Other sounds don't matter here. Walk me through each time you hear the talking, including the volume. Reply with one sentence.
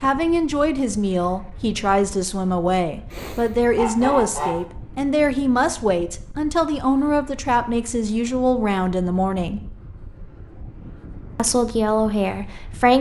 The talking can be heard from 0.0 to 9.6 s, at a steady volume; and briefly from 11.3 to 12.9 s.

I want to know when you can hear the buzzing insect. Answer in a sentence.
The buzzing insect can't be heard in this clip.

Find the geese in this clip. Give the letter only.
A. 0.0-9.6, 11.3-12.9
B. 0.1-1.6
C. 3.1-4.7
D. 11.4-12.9
C.